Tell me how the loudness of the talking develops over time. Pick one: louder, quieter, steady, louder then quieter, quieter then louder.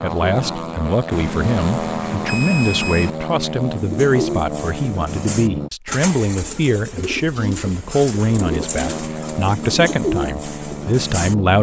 steady.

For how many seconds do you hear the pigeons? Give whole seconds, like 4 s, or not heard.
8 s.